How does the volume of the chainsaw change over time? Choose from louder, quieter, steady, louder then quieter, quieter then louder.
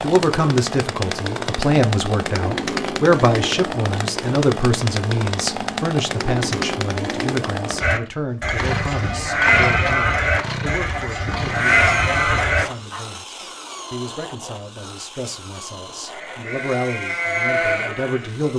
quieter.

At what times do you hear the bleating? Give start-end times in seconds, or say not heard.
7.8-13.0, 16.1-18.5.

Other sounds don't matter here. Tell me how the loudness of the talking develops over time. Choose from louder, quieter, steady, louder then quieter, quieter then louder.
quieter then louder.